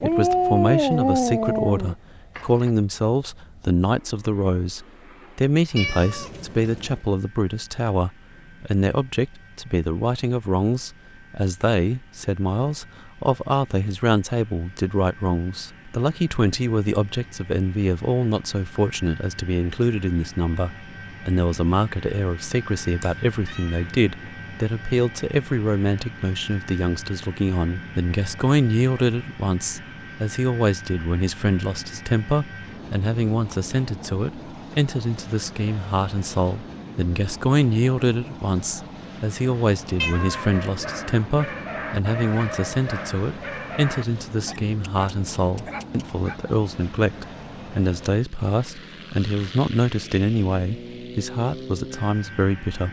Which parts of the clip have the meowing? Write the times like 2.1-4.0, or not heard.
5.8-7.0, 23.0-23.9, 40.0-40.5.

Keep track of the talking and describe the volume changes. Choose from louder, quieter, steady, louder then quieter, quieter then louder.
steady.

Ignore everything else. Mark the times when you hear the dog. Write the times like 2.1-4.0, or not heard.
0.0-2.7, 40.0-46.4.